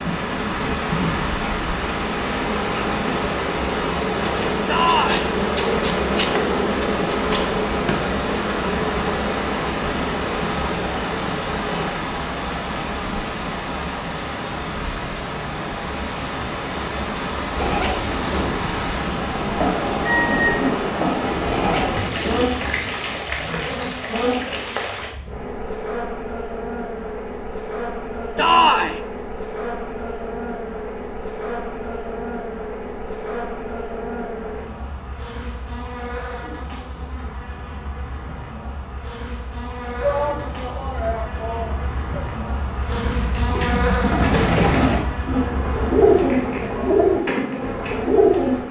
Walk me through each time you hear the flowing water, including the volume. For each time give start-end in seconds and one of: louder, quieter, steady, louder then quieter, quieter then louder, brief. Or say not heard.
0.0-25.1 steady.